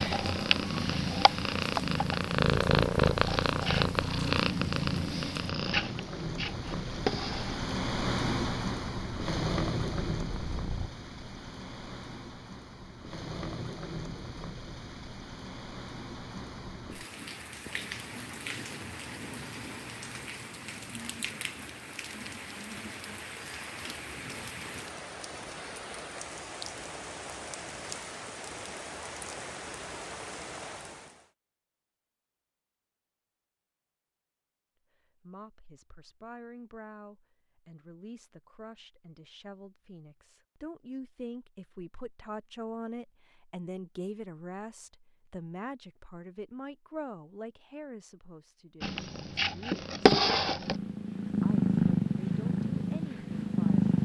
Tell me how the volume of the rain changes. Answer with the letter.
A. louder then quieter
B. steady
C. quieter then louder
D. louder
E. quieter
A.